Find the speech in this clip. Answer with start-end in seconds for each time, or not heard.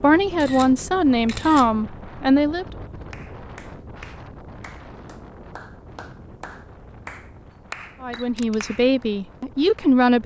0.0-2.6, 8.0-10.2.